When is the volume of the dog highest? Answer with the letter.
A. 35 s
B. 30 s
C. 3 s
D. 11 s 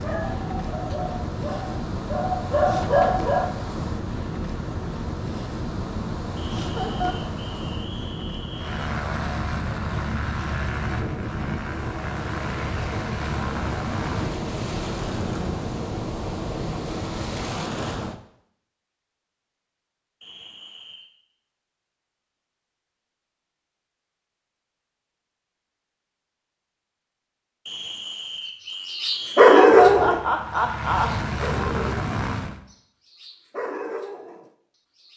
B.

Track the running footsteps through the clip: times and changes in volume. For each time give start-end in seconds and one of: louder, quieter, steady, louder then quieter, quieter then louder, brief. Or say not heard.
not heard.